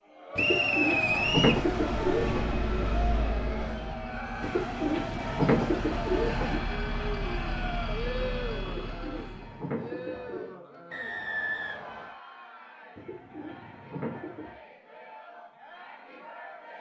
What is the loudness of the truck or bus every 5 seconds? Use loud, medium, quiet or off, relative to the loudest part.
loud, loud, off, off.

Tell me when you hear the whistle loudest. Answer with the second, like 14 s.
1 s.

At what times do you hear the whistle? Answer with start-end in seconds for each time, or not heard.
0.3-1.6, 10.9-12.2.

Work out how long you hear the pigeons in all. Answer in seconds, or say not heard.
8 s.